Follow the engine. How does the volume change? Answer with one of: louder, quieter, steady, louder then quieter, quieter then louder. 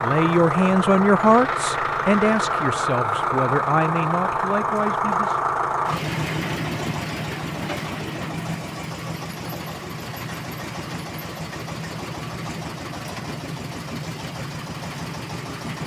quieter.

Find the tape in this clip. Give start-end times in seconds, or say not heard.
not heard.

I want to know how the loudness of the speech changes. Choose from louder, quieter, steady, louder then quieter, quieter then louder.
quieter.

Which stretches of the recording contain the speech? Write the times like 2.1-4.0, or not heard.
0.0-5.4.